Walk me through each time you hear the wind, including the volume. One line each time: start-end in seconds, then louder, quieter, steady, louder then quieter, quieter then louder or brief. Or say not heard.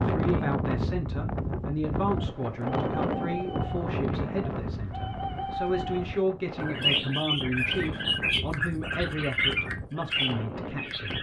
0.0-11.1 quieter.